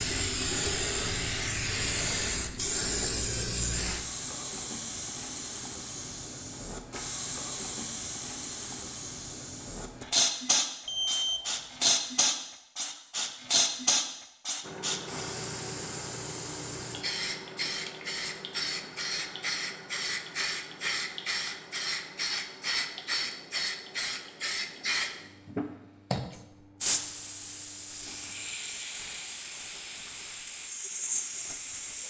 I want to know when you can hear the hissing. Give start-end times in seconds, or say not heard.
0.0-32.0.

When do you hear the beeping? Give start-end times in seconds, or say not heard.
10.8-11.9.